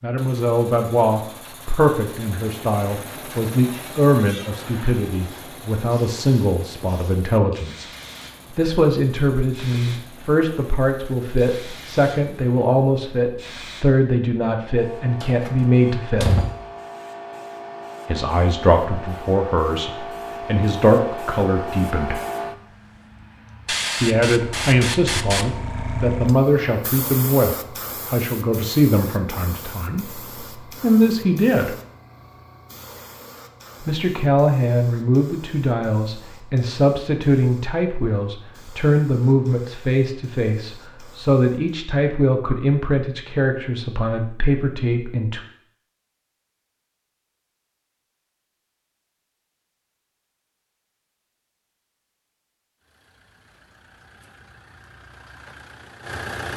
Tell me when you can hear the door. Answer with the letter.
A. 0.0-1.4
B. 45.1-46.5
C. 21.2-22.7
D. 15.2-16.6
D.